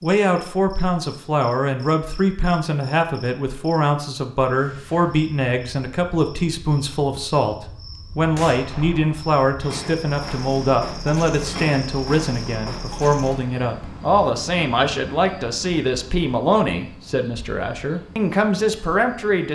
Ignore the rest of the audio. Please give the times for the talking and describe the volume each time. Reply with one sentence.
You can hear the talking from 0.0 to 19.4 s, at a steady volume.